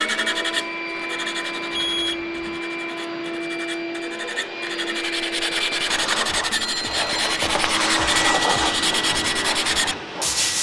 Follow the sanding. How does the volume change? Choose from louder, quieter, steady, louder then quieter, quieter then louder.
quieter then louder.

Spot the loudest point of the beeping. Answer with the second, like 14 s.
2 s.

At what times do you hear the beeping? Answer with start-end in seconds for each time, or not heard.
1.7-2.5, 6.5-7.3.